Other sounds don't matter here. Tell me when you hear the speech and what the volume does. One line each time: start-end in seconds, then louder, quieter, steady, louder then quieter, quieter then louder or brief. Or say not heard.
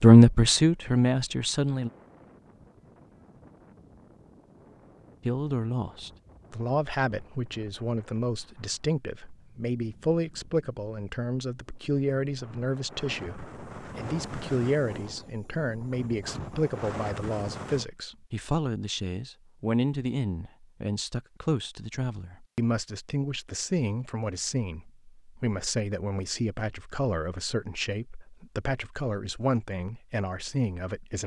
0.0-1.9 brief
5.2-31.2 steady.